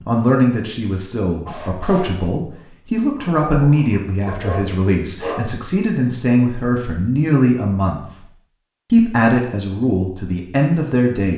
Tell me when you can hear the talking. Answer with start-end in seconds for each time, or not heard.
0.1-8.0, 8.9-11.3.